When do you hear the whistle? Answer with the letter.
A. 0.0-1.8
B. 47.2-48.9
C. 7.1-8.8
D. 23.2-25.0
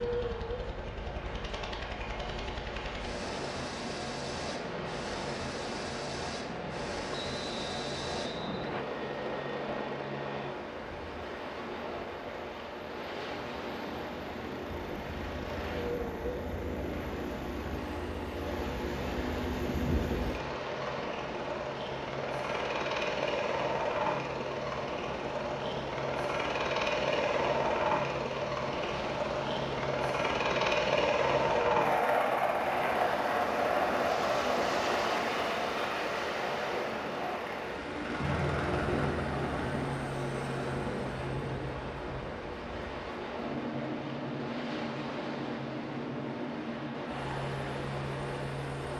C.